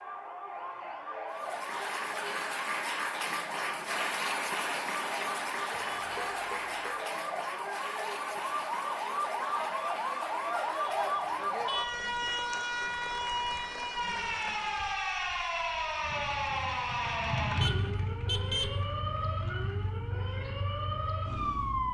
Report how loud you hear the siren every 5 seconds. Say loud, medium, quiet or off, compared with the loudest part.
medium, loud, loud, loud, loud.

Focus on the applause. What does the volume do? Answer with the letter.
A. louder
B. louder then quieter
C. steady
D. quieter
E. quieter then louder
D.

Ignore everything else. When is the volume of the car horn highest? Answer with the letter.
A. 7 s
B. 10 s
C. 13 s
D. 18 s
D.